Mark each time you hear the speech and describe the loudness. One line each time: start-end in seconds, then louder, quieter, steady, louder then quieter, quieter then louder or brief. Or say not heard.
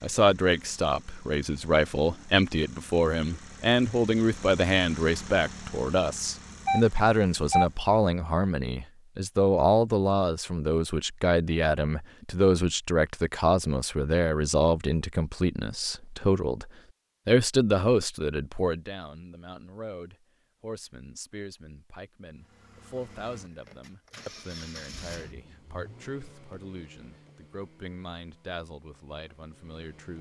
0.0-30.1 quieter.